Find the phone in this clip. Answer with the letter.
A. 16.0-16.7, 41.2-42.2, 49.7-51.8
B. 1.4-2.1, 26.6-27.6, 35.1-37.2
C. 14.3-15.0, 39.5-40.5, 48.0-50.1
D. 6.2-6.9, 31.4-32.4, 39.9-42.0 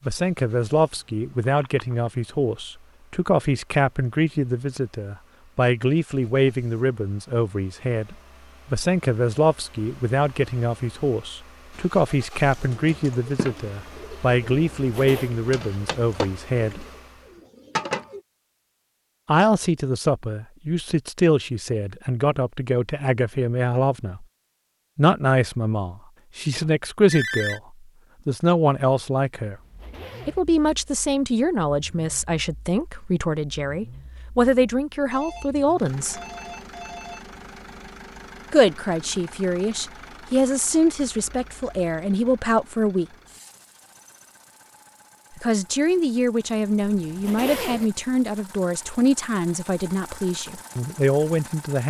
B.